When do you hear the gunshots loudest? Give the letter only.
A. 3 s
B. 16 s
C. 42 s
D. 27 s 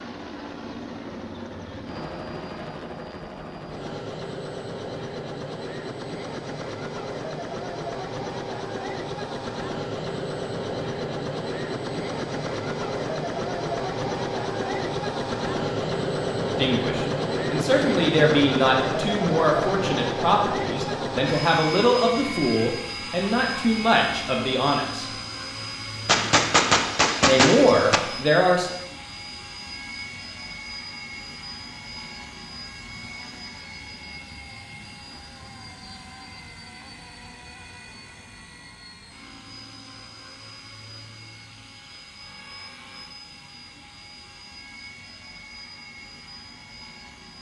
D.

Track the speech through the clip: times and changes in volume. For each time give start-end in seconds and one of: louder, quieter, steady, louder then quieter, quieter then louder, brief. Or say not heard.
16.6-25.1 steady
27.2-28.7 brief.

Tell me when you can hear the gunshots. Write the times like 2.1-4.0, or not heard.
26.1-28.0.